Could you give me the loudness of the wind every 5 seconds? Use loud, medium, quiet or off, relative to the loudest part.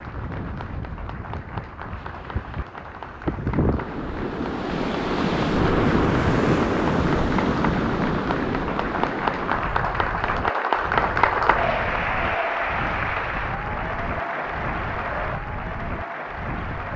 medium, loud, quiet, quiet.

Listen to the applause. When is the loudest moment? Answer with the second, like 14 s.
11 s.